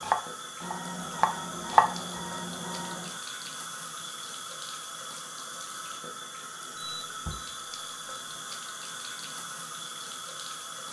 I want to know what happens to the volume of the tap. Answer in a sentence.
The volume of the tap stays about the same.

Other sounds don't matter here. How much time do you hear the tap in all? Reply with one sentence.
The tap can be heard for 11 seconds in total.